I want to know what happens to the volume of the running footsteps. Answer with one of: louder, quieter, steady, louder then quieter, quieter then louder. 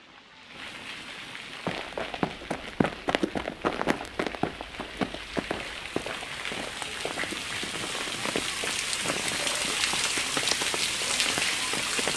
quieter.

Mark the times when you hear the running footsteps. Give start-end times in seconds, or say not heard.
1.6-11.2.